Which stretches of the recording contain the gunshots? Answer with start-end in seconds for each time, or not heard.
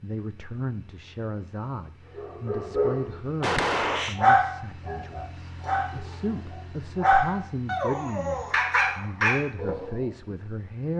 3.4-4.2.